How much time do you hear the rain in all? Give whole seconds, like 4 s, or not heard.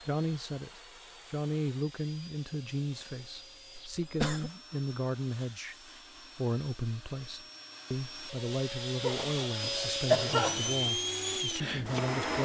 not heard.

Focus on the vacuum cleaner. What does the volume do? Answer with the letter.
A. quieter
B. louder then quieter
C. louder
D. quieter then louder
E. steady
C.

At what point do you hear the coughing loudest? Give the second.
10 s.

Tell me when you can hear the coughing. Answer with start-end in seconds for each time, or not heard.
4.0-4.5, 9.0-10.9.